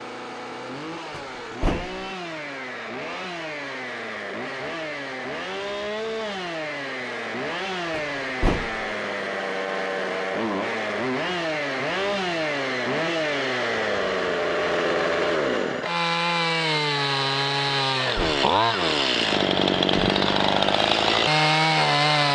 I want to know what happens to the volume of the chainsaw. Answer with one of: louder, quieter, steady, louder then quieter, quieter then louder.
louder.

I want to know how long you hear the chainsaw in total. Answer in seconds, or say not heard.
22 s.